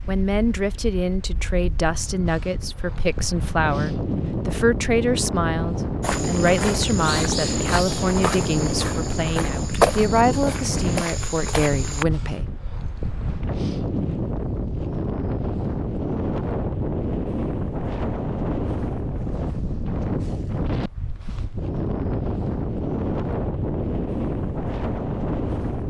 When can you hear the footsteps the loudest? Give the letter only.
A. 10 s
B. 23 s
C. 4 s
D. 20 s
A.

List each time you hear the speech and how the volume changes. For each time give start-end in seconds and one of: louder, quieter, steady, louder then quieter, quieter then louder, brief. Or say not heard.
0.1-12.4 steady.